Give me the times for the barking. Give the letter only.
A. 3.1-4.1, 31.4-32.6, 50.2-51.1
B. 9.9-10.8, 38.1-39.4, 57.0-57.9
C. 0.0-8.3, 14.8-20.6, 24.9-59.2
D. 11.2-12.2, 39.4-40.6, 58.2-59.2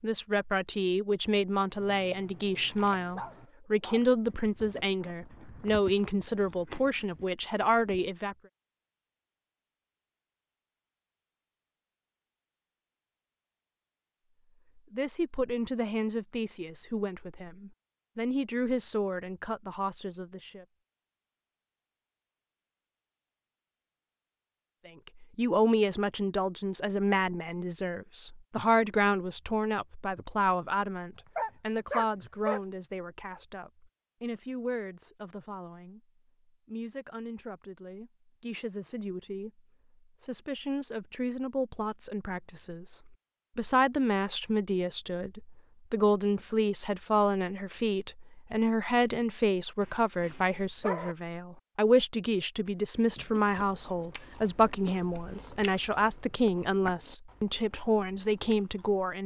A.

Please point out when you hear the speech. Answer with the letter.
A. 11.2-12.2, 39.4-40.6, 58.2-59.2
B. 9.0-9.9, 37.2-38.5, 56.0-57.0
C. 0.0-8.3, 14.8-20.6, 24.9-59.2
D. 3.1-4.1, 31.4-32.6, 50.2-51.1
C.